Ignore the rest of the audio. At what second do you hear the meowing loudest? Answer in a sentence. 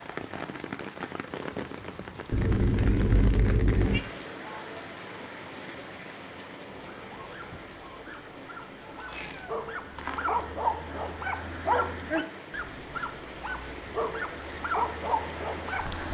The loudest moment of the meowing is at 3 seconds.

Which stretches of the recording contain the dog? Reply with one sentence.
You can hear the dog from 6.9 to 16.1 s.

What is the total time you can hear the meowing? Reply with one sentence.
The meowing can be heard for 3 seconds in total.